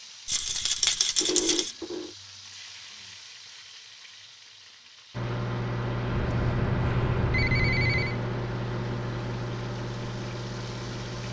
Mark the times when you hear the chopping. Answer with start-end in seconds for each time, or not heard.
not heard.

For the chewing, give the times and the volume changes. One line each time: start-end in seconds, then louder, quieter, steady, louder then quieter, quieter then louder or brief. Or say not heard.
not heard.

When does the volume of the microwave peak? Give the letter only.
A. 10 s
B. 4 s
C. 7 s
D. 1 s
C.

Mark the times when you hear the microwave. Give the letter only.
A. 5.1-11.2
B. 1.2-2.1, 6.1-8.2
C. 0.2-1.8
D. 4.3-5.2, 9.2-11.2
A.